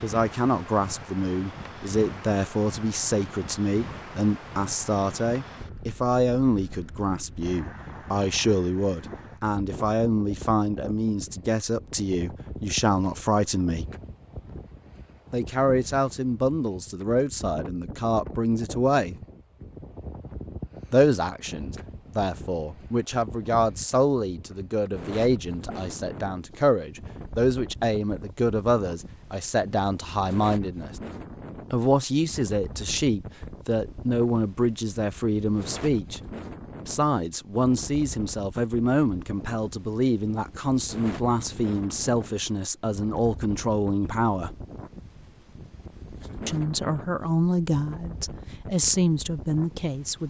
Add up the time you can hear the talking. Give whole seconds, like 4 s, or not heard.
44 s.